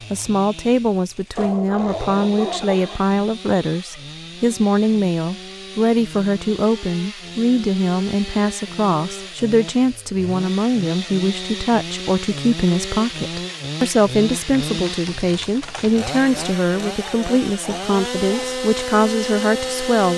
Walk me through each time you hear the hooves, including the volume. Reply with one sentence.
You can't hear the hooves here.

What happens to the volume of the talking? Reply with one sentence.
The loudness of the talking stays about the same.